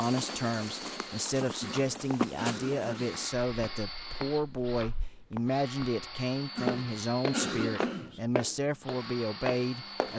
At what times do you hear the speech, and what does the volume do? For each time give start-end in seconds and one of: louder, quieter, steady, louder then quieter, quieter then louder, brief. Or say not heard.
0.0-10.1 steady.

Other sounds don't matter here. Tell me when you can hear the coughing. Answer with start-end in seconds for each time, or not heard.
1.6-3.2, 6.5-8.2.